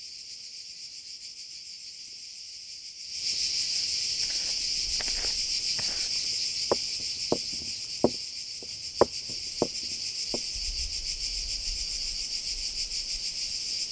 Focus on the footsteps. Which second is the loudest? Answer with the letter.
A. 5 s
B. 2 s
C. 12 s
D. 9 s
D.